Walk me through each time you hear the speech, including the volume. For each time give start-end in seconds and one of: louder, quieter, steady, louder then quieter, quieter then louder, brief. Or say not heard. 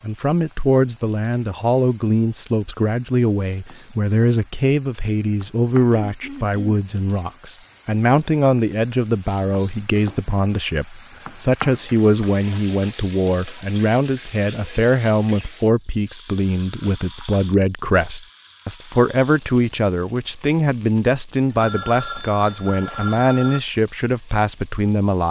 0.0-25.2 steady.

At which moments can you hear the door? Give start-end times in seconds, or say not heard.
not heard.